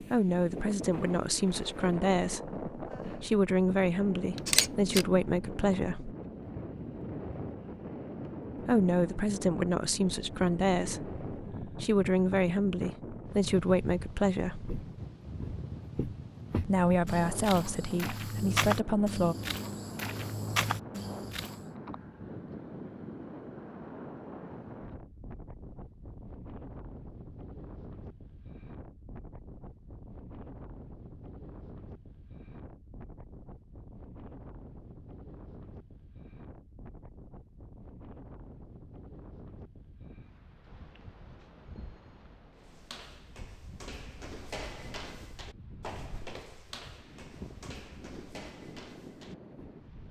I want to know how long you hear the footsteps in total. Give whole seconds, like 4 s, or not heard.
14 s.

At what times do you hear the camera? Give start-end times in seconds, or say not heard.
4.3-5.0.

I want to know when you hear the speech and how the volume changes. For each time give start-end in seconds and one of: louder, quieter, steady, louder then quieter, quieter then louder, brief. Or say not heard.
0.0-6.2 steady
8.6-14.7 steady
16.6-19.4 brief.